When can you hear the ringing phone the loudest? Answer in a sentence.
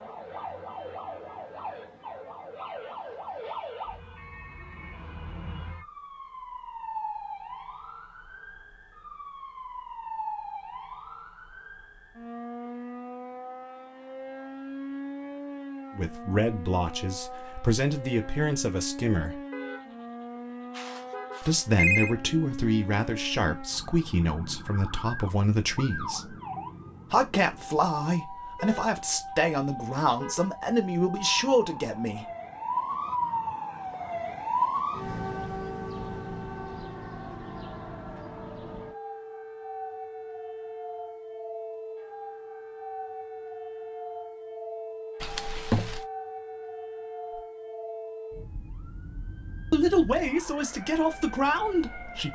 The volume of the ringing phone peaks at 22 seconds.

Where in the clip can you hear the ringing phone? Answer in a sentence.
The ringing phone can be heard from 20.8 to 22.1 s and from 45.2 to 46.0 s.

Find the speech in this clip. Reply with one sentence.
You can hear the speech from 15.9 to 19.4 s, from 21.4 to 26.4 s, from 27.1 to 32.2 s and from 49.7 to 52.2 s.